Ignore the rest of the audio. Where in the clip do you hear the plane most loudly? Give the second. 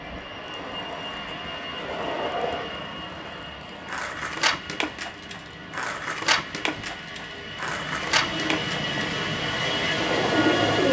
10 s.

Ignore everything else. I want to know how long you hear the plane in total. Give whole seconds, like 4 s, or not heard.
11 s.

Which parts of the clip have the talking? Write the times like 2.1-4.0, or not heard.
not heard.